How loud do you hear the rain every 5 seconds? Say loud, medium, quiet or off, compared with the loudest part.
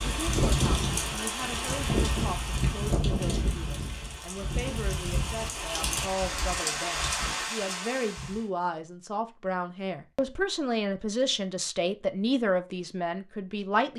loud, loud, off.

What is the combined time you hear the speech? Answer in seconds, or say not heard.
14 s.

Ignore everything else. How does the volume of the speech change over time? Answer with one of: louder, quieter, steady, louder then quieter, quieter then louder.
louder.